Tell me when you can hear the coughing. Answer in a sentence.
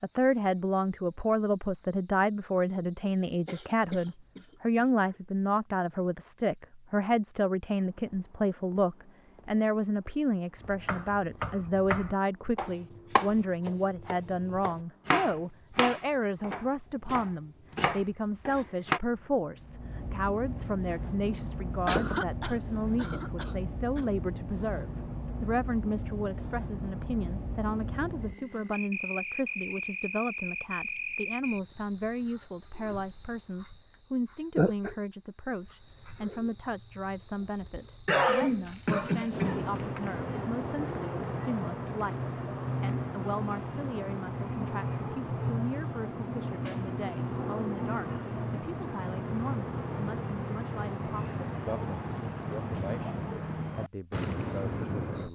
The coughing can be heard from 3.5 to 5.2 s, from 21.9 to 24.1 s and from 38.0 to 39.6 s.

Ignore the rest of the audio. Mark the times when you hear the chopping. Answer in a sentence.
You can hear the chopping from 10.6 to 19.0 s.